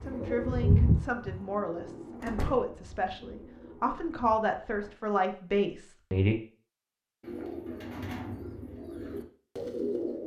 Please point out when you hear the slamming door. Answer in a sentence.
The slamming door can be heard from 2.2 to 2.7 s.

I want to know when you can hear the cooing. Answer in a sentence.
The cooing can be heard from 0.0 to 4.9 s and from 7.2 to 10.2 s.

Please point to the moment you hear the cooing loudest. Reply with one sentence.
The volume of the cooing peaks at 1 second.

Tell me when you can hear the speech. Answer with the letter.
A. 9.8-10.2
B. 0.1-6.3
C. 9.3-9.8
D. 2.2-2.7
B.